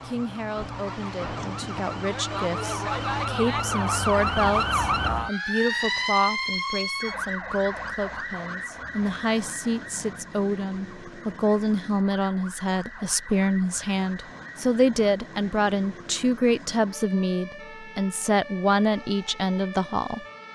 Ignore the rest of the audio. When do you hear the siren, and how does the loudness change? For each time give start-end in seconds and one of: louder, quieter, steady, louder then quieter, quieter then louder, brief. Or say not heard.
0.0-20.5 quieter.